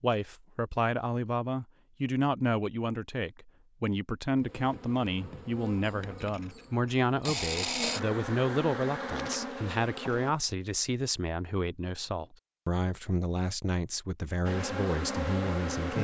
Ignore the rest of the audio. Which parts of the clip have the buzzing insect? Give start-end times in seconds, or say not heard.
4.3-10.3, 14.4-16.0.